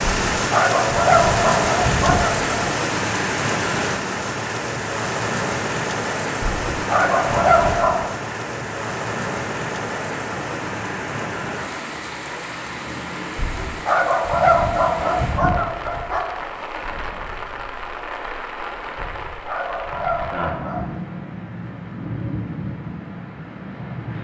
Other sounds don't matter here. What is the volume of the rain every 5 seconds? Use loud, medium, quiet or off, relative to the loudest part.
loud, loud, medium, medium, medium.